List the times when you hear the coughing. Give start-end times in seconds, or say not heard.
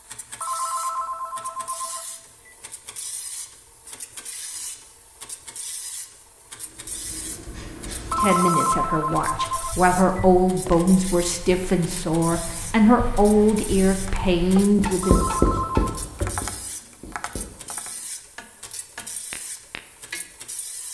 not heard.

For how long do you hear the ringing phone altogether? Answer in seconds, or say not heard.
6 s.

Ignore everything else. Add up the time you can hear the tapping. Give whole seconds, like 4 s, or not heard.
6 s.